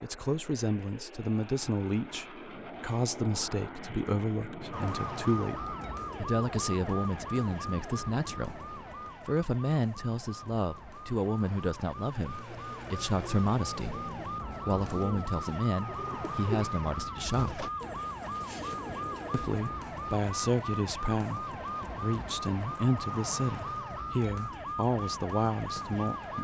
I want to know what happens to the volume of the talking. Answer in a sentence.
The volume of the talking stays about the same.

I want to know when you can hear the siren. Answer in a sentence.
You can hear the siren from 4.7 to 26.3 s.